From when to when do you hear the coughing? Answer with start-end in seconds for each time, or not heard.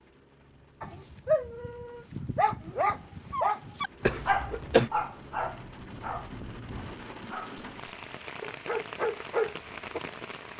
4.0-4.9.